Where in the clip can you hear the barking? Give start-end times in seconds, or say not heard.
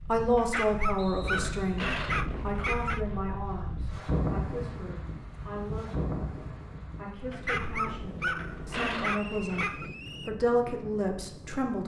0.3-3.0, 7.3-9.9.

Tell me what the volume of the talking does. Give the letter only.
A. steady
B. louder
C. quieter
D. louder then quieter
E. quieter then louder
E.